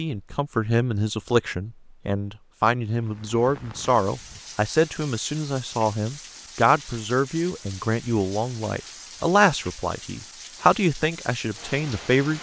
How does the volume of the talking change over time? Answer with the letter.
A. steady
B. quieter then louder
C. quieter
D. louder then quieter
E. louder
A.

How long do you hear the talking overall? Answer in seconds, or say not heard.
12 s.